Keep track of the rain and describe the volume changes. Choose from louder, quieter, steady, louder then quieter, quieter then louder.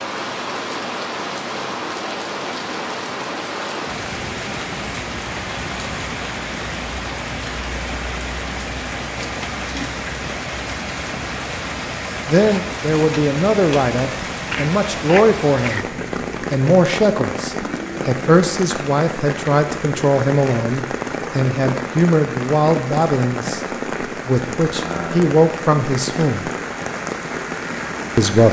steady.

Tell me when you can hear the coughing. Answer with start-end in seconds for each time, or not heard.
14.5-16.0.